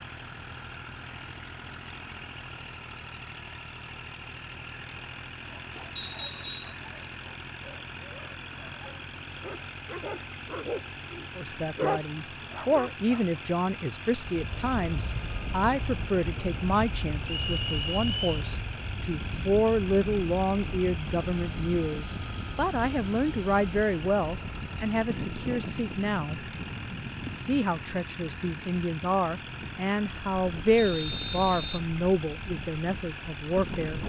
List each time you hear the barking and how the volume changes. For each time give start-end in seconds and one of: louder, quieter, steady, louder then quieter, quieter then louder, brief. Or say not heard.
5.5-13.4 louder.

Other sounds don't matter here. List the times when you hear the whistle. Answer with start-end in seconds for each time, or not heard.
6.0-6.8, 17.2-18.4, 30.8-31.9.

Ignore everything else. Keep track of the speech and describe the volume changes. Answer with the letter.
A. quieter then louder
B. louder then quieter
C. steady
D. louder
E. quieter
C.